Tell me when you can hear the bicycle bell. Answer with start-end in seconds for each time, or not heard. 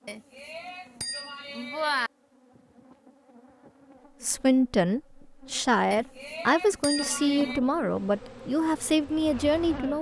0.1-2.1, 5.9-7.6.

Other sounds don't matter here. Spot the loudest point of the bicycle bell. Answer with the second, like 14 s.
2 s.